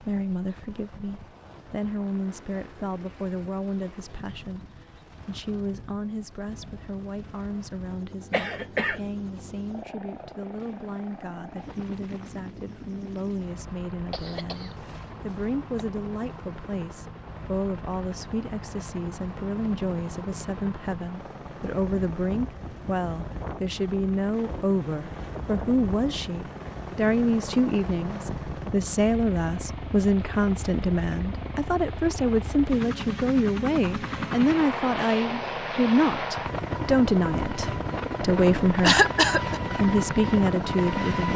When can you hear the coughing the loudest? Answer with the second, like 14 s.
39 s.